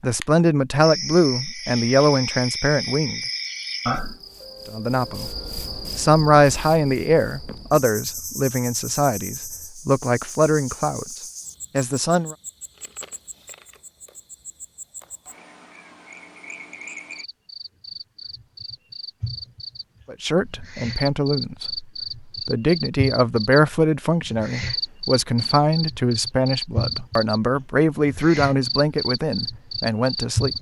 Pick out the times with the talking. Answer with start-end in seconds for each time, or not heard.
0.0-3.2, 4.7-5.3, 6.0-12.3, 20.1-21.9, 22.4-30.5.